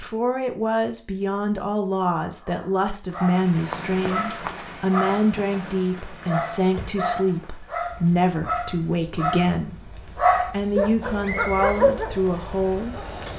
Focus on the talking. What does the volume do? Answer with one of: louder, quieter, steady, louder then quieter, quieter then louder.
steady.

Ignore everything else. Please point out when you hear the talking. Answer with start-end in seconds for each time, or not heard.
0.0-13.3.